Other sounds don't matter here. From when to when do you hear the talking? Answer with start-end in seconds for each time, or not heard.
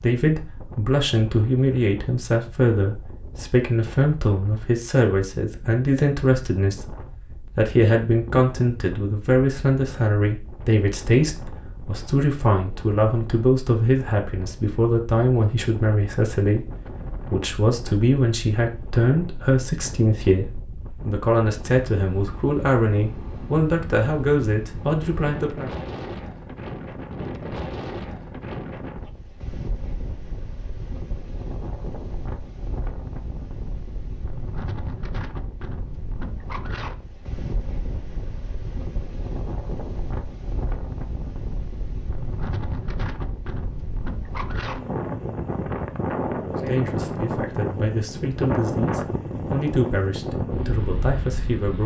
0.0-25.7, 46.4-51.8.